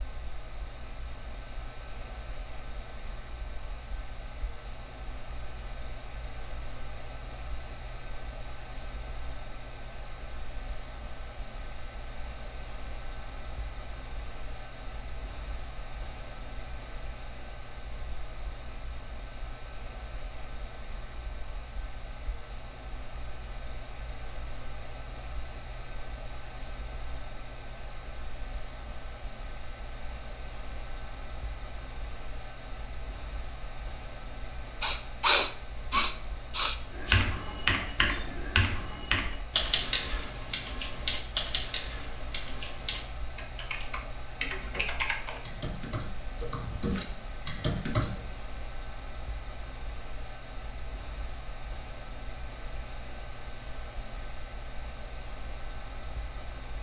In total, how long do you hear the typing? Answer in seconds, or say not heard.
11 s.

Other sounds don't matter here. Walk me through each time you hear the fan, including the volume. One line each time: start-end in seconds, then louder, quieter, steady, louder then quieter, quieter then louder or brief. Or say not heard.
0.0-56.7 steady.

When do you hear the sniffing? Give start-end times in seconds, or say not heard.
34.8-36.8.